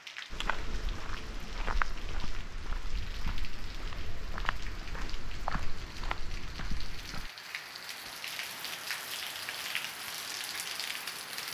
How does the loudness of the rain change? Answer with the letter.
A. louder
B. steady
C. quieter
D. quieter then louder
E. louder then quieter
A.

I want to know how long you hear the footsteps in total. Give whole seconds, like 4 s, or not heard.
7 s.